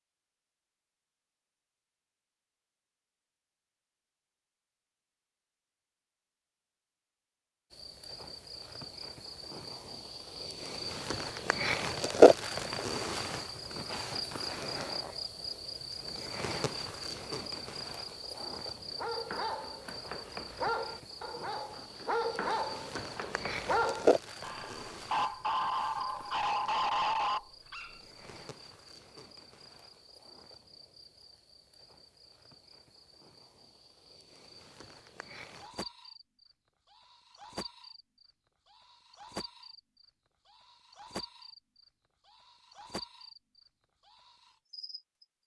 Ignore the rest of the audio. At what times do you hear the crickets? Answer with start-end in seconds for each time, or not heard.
7.7-45.2.